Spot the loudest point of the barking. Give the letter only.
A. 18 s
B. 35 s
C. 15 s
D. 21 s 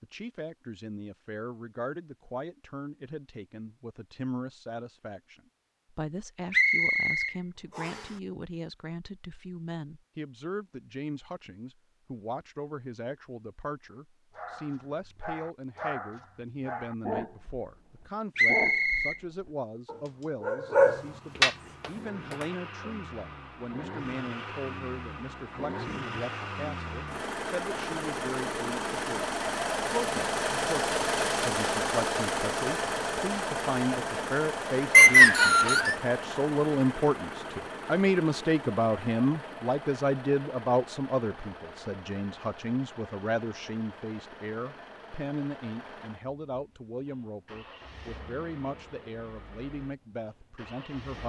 D.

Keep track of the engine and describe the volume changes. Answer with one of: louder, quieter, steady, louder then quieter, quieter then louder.
louder then quieter.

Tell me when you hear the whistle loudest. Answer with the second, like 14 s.
35 s.